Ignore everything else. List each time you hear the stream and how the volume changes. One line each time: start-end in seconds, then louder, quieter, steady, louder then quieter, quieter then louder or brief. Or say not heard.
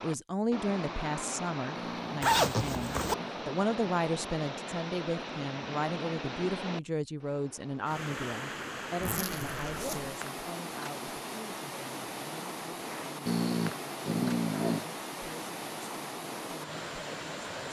0.0-17.6 steady.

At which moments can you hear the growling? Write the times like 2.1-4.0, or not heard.
1.8-3.4, 13.2-14.9.